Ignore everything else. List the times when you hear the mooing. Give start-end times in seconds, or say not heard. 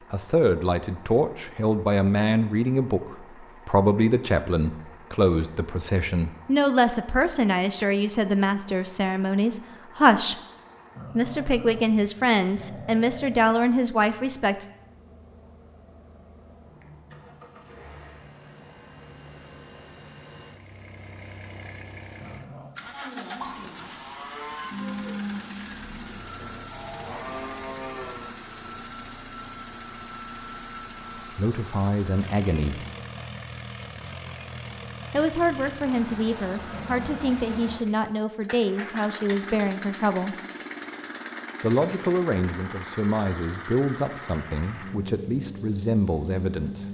22.9-28.3.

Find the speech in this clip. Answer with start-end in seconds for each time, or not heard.
0.1-10.3, 11.2-14.6, 31.4-32.8, 35.1-40.4, 41.6-46.8.